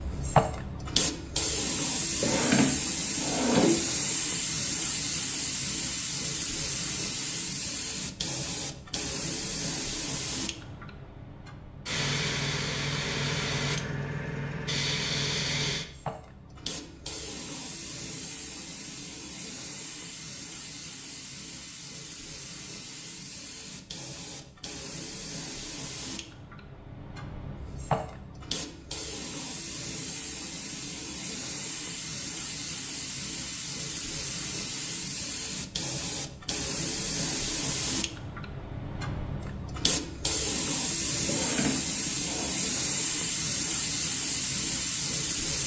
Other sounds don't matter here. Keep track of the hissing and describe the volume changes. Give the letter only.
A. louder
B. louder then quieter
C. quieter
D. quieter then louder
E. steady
D.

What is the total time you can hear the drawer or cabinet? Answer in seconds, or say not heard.
3 s.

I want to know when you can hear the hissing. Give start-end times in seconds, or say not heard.
0.0-45.6.